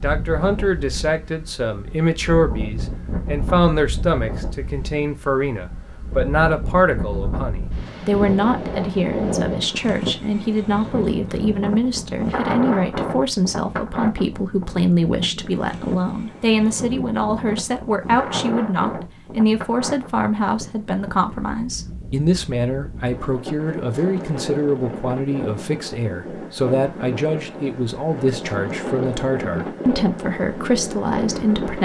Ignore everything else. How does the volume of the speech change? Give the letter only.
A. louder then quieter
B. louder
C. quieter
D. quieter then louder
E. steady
E.